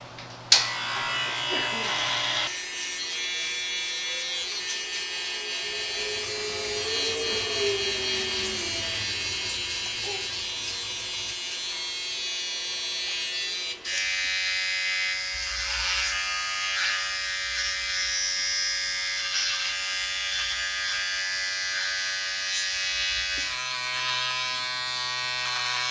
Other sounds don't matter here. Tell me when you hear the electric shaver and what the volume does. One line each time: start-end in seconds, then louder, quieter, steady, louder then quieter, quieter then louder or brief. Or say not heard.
0.0-25.8 steady.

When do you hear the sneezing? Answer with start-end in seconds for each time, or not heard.
1.2-2.0.